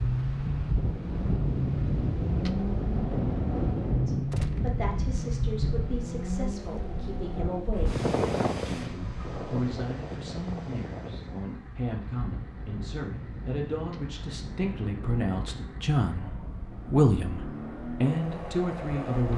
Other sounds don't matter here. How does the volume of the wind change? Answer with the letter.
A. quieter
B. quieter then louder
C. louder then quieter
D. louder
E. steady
A.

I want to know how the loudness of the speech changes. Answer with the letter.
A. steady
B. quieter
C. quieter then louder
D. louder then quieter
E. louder
E.